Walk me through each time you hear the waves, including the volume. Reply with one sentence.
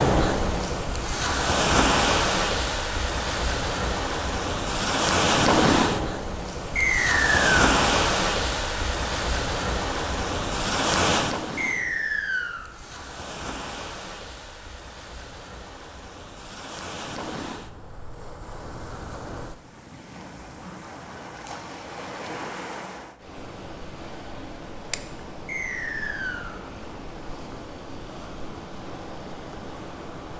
The waves can be heard from 0.0 to 30.3 s, getting quieter.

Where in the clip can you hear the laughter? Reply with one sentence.
The laughter can't be heard in this clip.